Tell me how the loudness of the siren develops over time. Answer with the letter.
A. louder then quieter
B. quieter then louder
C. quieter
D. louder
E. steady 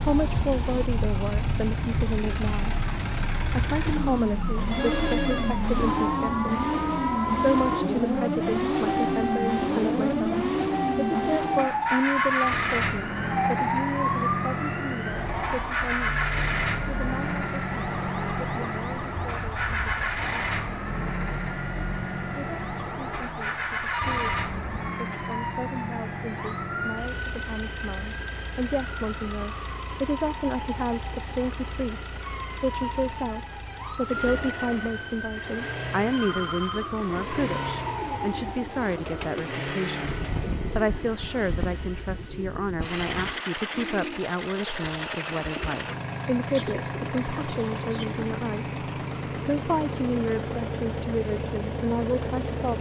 C.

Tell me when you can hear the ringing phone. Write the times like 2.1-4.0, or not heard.
4.7-5.7, 23.9-24.5, 36.0-36.9.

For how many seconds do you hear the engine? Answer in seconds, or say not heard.
53 s.